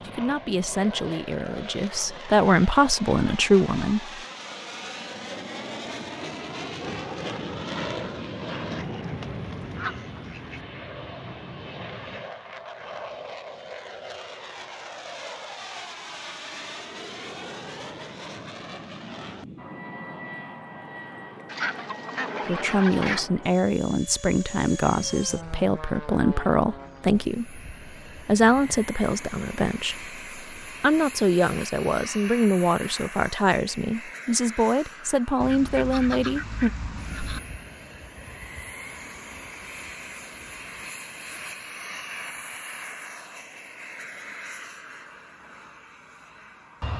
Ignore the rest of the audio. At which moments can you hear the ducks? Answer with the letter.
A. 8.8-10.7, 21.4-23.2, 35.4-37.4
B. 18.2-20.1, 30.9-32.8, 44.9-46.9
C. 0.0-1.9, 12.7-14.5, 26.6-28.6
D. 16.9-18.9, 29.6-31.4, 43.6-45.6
A.